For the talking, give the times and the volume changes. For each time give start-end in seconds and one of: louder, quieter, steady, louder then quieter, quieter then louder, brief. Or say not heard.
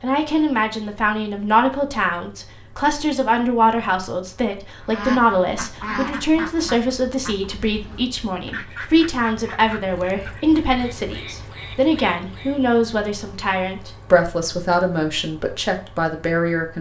0.0-16.7 steady.